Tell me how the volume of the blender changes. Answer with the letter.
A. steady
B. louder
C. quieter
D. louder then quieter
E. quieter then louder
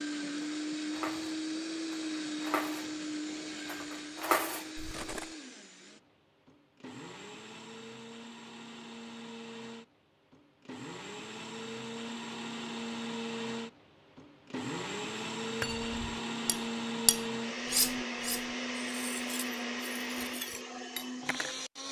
E.